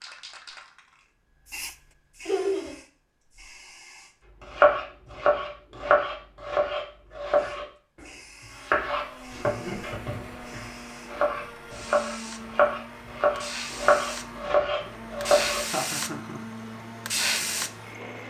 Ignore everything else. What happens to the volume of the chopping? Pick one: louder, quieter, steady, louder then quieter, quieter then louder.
quieter then louder.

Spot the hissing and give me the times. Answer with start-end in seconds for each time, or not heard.
0.0-4.2, 7.3-18.2.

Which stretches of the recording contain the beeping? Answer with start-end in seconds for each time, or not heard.
not heard.